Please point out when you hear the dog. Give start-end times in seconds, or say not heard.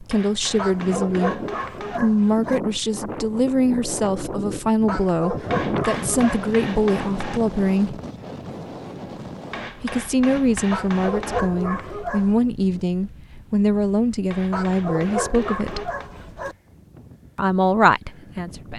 0.6-2.6, 4.8-6.5, 10.7-12.3, 14.5-16.6.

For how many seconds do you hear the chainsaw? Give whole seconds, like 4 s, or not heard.
not heard.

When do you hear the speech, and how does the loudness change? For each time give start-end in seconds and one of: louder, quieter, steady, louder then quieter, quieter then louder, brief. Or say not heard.
0.0-1.4 brief
2.0-8.0 steady
9.8-15.9 steady
17.4-18.7 brief.